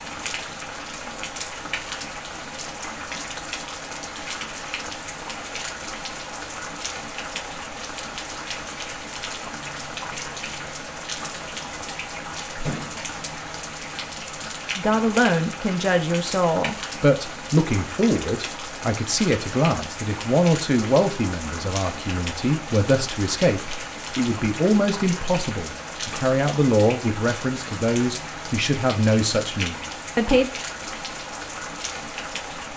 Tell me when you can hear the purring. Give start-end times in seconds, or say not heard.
not heard.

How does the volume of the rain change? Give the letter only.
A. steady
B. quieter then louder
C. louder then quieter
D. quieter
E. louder
A.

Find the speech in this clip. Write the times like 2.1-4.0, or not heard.
14.8-30.5.